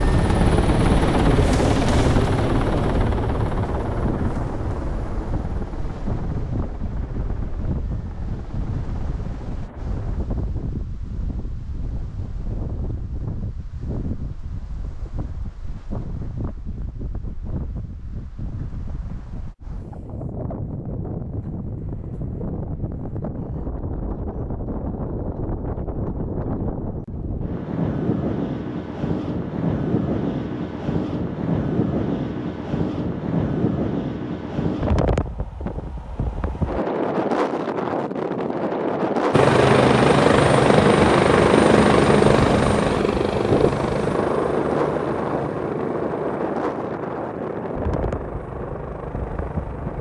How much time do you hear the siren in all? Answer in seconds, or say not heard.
not heard.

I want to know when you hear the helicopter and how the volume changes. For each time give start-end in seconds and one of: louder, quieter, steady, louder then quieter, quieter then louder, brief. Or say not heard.
0.0-10.2 quieter
39.3-49.9 quieter.